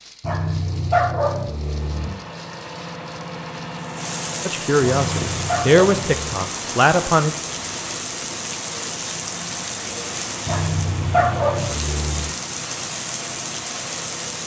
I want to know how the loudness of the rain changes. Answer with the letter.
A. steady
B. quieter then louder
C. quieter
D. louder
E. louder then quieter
D.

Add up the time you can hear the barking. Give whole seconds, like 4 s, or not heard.
5 s.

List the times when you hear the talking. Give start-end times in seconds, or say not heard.
4.5-7.3.